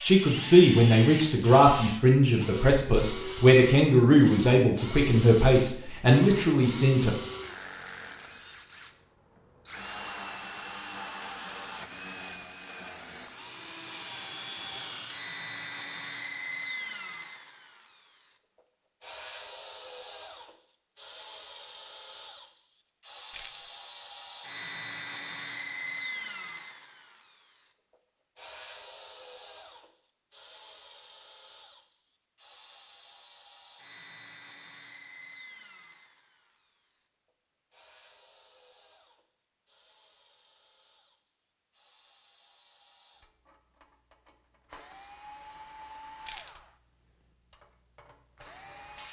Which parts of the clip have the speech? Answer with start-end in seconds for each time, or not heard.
0.0-7.1.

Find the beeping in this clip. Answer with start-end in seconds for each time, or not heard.
not heard.